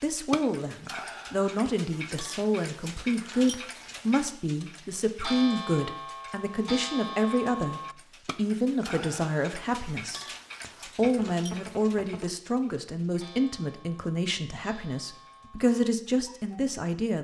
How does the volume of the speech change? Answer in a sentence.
The loudness of the speech stays about the same.